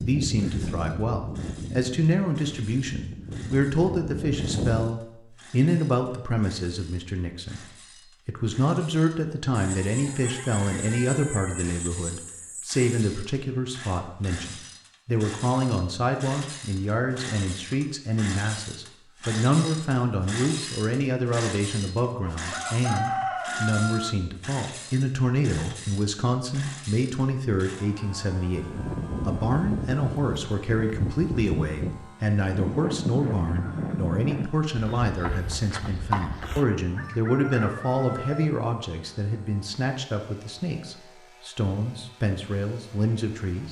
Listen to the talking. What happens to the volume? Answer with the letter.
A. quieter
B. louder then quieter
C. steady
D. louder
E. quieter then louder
C.